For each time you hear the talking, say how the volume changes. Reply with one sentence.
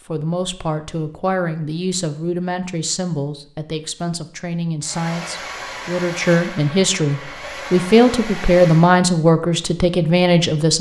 The talking can be heard from 0.1 to 10.7 s, getting louder.